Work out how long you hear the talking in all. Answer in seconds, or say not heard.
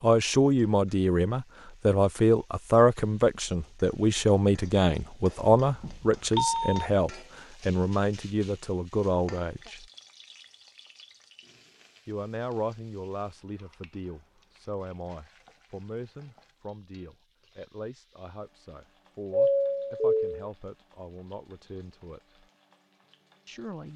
21 s.